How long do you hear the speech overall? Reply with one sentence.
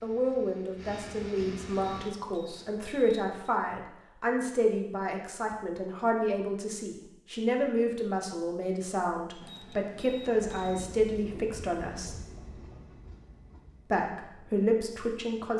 The speech can be heard for 14 seconds in total.